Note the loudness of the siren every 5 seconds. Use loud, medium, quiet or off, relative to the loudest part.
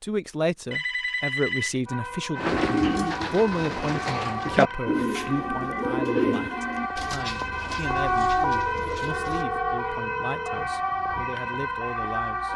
medium, loud, loud.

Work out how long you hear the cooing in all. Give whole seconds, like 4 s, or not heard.
7 s.